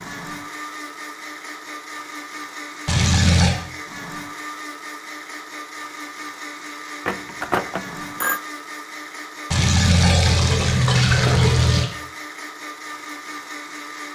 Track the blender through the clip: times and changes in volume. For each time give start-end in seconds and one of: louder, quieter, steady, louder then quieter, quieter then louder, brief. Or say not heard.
0.0-14.1 steady.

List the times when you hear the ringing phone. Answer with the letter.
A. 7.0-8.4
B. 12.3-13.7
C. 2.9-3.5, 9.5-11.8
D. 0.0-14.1
A.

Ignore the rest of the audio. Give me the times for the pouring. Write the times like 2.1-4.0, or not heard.
2.9-3.5, 9.5-11.8.